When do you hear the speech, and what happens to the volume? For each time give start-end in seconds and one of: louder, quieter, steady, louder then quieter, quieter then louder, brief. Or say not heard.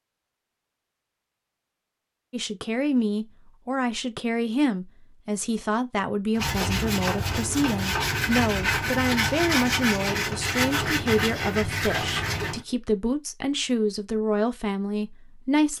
2.3-15.7 steady.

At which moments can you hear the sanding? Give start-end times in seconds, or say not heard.
6.3-12.7.